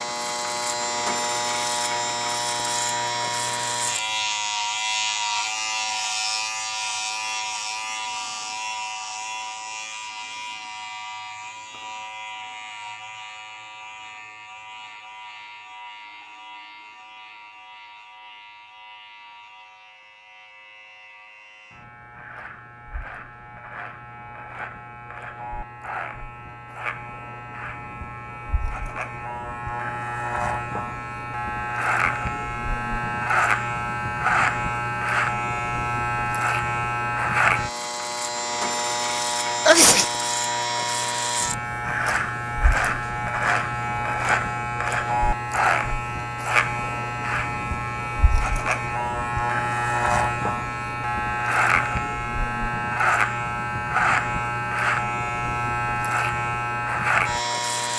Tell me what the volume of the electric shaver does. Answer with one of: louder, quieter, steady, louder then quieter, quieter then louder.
quieter then louder.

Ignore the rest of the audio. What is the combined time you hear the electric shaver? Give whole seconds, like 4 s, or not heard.
58 s.